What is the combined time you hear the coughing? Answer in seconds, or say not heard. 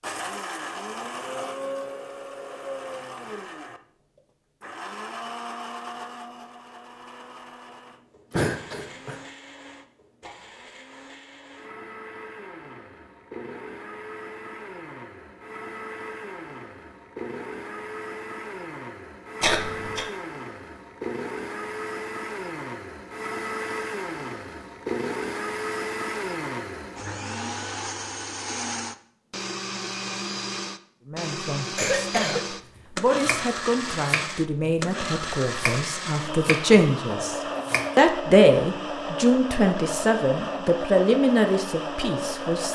2 s.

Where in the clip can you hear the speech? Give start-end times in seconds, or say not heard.
31.1-42.6.